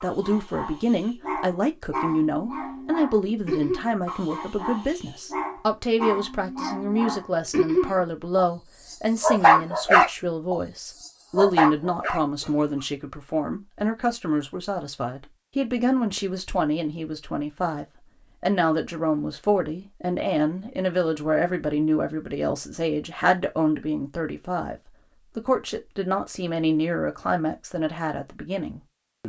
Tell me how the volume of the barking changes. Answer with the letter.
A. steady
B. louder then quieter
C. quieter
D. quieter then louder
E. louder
E.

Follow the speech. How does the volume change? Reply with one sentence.
The loudness of the speech stays about the same.